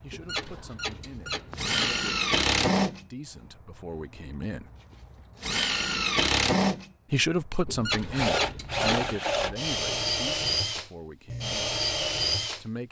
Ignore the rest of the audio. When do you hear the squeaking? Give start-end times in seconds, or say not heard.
0.1-2.0, 7.7-9.2.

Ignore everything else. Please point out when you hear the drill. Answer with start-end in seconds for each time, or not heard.
0.0-12.7.